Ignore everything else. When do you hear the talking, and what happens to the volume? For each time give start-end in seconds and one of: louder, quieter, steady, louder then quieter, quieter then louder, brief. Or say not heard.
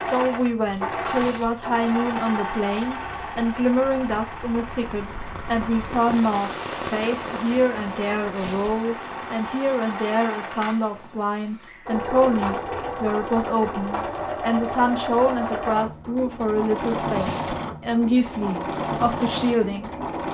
0.0-20.1 steady.